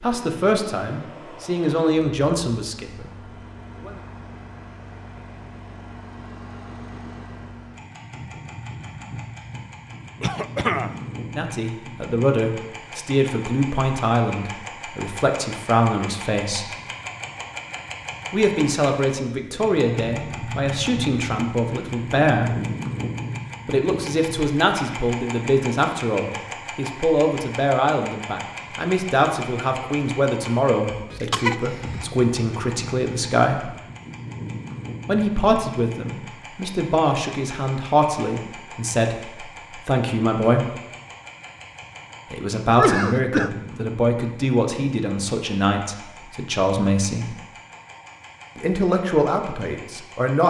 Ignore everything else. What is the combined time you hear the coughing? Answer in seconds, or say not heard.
3 s.